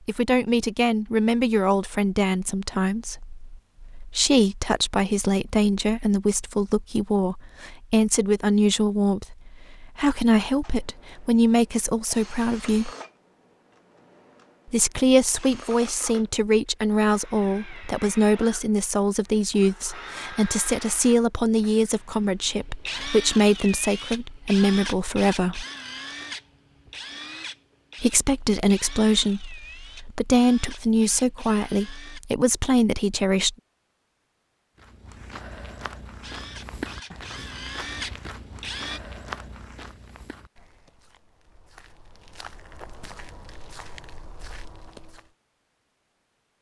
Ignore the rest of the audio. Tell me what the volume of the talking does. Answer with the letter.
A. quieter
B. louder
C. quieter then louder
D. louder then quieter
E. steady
E.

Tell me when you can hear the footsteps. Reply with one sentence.
You can hear the footsteps from 34.8 to 45.3 s.